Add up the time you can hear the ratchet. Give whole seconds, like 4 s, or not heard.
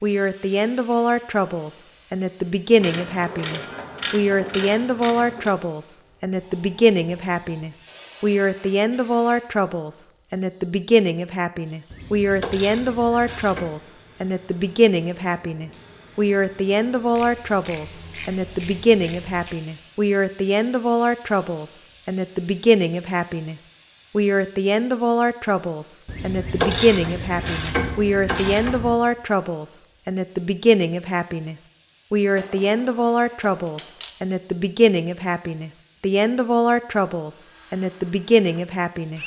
12 s.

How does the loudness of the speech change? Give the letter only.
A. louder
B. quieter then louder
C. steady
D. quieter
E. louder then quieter
C.